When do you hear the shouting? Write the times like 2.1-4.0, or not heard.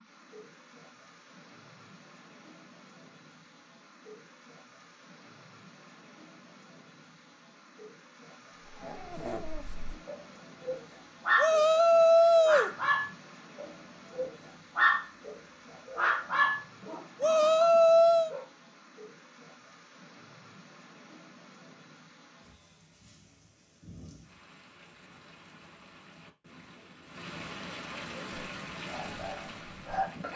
11.3-12.8, 17.2-18.4.